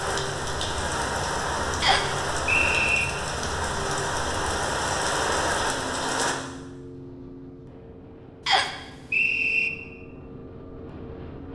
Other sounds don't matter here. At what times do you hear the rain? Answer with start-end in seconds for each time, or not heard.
0.0-6.3.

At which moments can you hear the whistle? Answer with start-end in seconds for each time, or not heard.
1.8-3.0, 8.4-9.7.